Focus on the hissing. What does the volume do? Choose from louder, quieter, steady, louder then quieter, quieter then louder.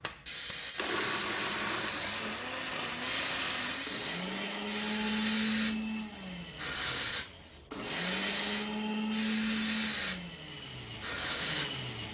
steady.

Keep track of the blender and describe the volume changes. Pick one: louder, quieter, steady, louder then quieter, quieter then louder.
steady.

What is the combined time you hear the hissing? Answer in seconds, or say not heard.
12 s.